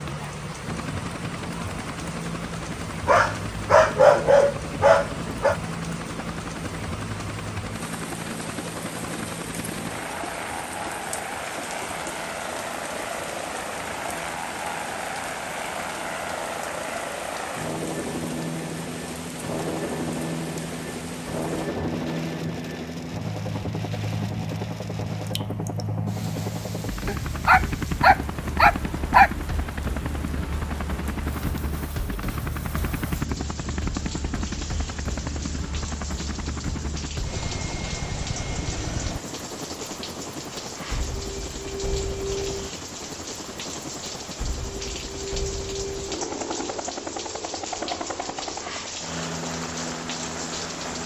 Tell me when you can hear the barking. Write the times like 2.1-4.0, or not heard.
3.0-5.5, 27.1-29.3.